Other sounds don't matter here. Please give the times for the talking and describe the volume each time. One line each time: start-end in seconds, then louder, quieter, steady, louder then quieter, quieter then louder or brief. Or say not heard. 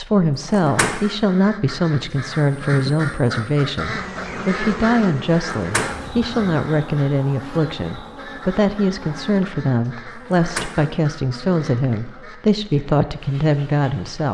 0.0-14.2 steady.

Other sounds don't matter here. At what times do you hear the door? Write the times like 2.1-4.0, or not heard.
0.4-0.9, 5.5-6.4, 10.2-10.8.